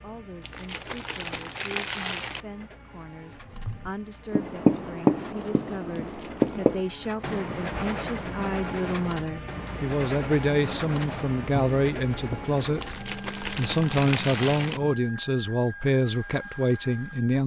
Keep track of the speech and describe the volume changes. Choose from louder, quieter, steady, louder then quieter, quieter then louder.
louder.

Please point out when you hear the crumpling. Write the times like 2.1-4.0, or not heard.
0.4-2.5, 6.0-6.7, 12.8-14.8.